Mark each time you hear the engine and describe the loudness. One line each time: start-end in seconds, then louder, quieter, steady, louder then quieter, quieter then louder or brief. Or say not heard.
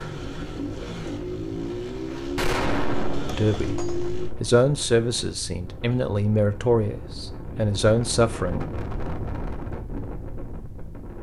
0.0-4.3 steady.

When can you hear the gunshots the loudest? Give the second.
3 s.